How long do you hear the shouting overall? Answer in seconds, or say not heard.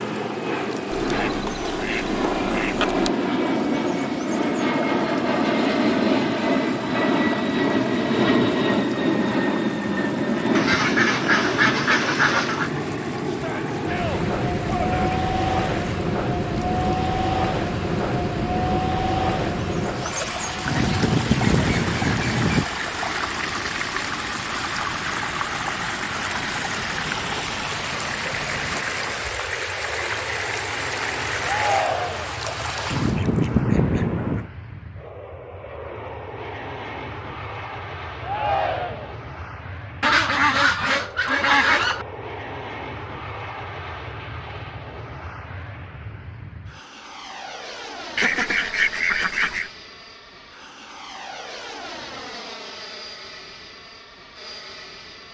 4 s.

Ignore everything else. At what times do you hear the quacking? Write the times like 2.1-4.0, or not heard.
0.9-3.1, 10.6-12.7, 20.6-22.6, 32.9-34.5, 40.0-42.0, 48.1-49.7.